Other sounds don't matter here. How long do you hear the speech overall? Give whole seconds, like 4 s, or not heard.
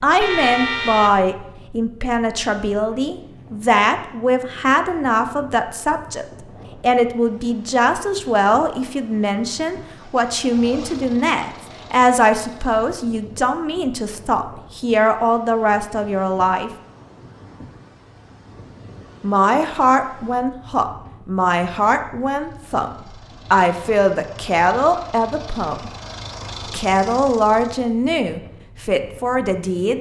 26 s.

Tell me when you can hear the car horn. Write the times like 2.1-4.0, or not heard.
0.1-1.3.